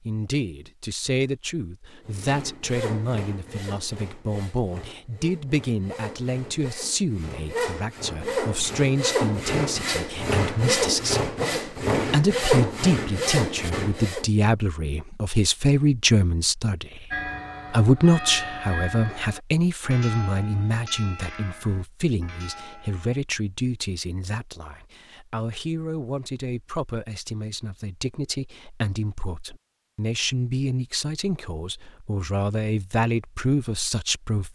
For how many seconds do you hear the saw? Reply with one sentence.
You can hear the saw for 12 seconds altogether.